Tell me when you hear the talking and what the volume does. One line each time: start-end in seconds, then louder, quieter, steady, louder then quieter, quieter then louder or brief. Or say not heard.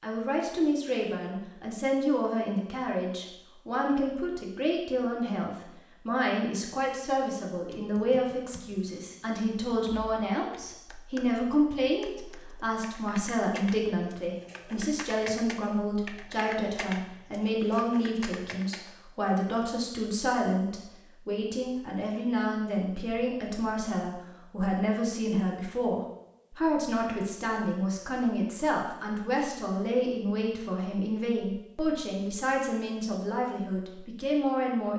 0.0-34.9 steady.